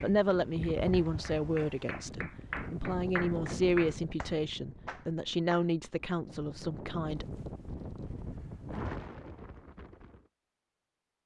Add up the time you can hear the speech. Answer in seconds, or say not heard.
7 s.